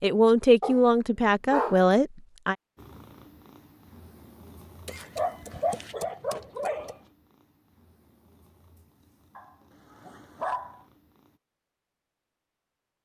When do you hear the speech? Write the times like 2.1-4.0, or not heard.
0.0-2.5.